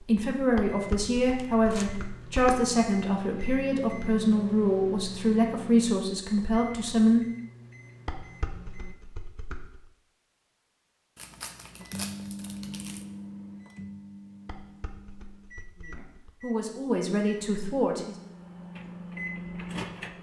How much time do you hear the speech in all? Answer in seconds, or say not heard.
10 s.